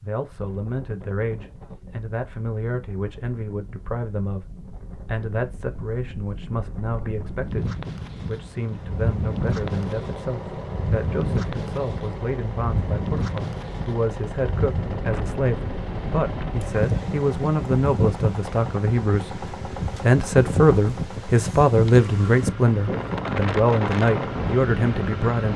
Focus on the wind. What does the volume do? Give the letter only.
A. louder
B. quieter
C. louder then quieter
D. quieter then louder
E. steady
A.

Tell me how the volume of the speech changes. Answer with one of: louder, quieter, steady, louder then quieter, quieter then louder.
louder.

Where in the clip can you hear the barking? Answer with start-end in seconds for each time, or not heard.
not heard.